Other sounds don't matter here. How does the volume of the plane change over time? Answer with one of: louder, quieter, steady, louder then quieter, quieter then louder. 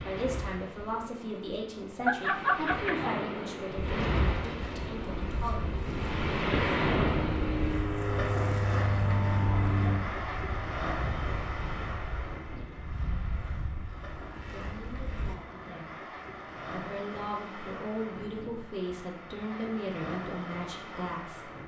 louder then quieter.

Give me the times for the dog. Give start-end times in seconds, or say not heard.
1.9-3.1.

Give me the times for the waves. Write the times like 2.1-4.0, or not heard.
0.0-21.6.